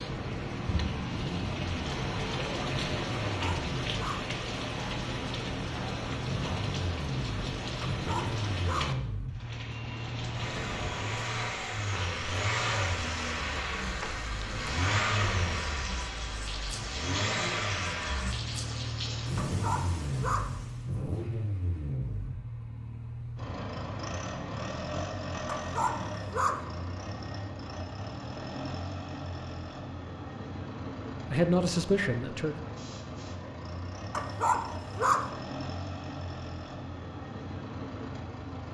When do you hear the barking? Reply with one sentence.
You can hear the barking from 3.4 to 4.2 s, from 7.8 to 8.9 s, from 19.4 to 20.5 s, from 25.4 to 26.6 s and from 34.1 to 35.3 s.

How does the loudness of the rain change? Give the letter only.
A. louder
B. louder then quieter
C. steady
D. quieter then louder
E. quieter
E.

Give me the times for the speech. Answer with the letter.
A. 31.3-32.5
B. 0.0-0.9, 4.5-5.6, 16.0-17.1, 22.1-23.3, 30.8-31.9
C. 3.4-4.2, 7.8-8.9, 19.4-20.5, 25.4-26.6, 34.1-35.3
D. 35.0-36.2
A.